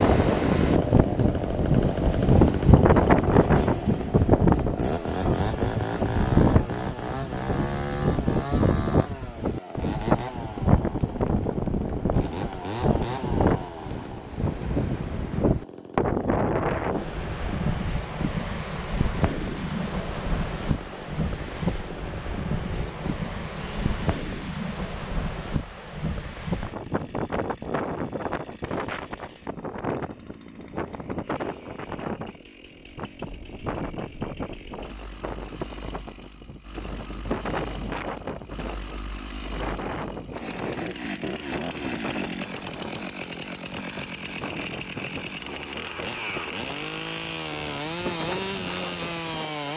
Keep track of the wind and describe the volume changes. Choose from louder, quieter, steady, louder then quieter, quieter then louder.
quieter.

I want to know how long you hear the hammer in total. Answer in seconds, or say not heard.
not heard.